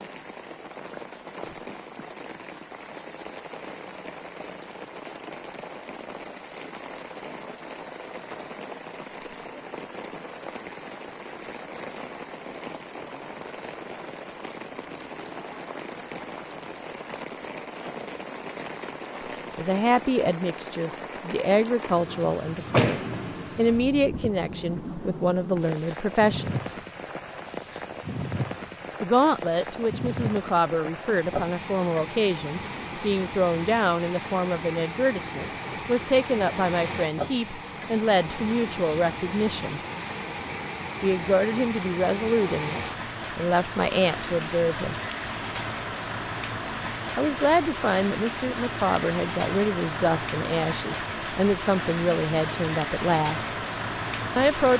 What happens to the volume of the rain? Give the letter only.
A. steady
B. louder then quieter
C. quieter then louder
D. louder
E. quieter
D.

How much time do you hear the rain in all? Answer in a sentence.
The rain can be heard for 55 seconds in total.